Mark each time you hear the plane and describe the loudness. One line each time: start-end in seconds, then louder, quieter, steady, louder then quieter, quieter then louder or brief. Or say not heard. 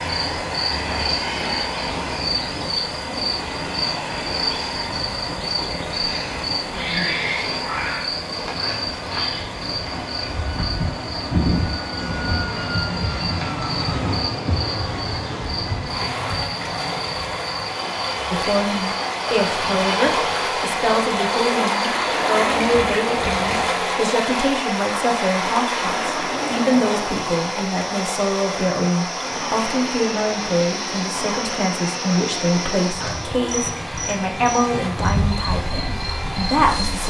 0.0-37.0 steady.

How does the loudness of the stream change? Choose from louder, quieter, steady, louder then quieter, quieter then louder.
louder then quieter.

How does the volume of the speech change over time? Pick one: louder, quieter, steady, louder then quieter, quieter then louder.
steady.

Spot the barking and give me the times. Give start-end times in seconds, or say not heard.
not heard.